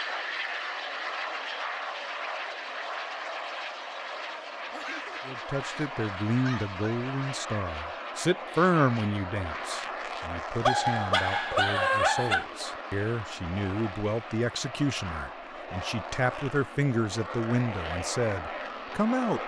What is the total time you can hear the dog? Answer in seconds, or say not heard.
4 s.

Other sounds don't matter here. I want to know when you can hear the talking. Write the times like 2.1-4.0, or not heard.
5.2-19.4.